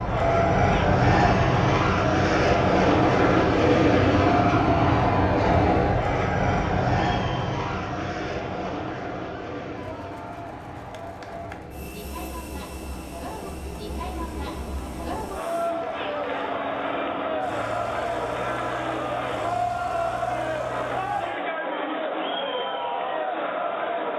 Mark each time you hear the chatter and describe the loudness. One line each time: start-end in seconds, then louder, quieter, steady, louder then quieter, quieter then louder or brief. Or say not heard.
0.0-24.1 quieter then louder.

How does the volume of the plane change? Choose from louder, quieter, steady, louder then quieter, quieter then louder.
quieter.